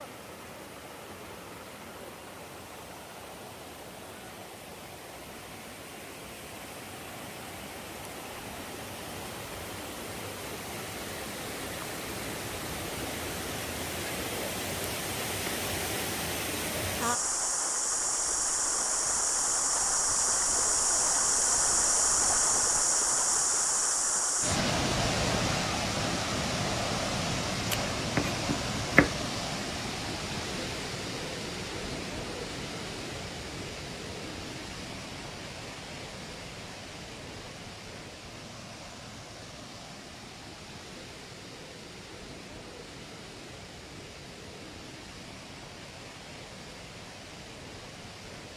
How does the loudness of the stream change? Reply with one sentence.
The volume of the stream goes up, then down.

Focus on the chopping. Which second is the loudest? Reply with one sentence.
The loudest moment of the chopping is at 29 seconds.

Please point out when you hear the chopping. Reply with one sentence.
The chopping can be heard from 27.7 to 29.2 s.